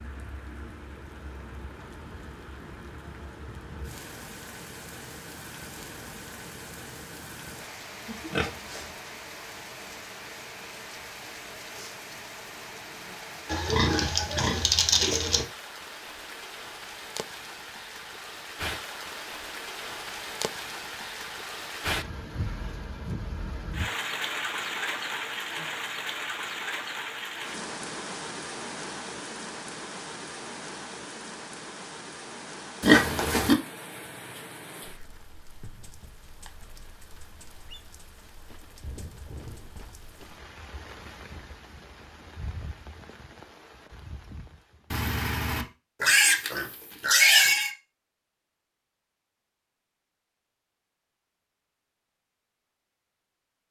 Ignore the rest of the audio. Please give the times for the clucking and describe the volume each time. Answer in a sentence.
The clucking can't be heard in this clip.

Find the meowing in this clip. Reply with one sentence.
The meowing can't be heard in this clip.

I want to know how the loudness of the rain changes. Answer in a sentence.
The loudness of the rain goes up, then down.